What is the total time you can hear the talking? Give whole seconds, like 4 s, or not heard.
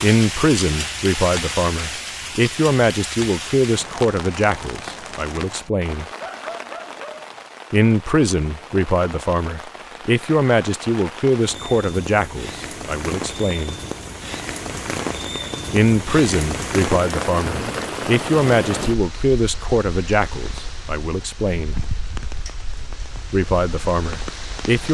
20 s.